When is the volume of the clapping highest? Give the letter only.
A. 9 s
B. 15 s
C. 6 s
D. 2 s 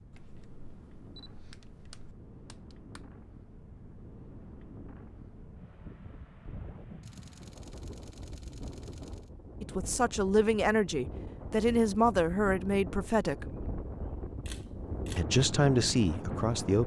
D.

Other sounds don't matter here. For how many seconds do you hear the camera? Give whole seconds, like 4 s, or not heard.
5 s.